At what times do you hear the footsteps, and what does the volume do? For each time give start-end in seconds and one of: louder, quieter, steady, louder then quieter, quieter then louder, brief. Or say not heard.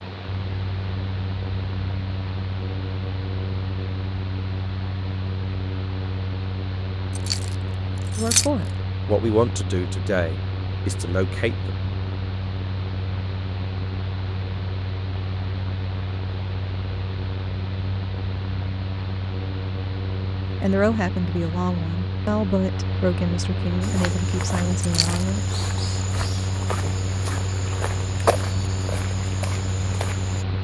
23.8-30.4 louder then quieter.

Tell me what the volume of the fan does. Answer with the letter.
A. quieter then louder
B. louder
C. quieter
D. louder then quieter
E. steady
E.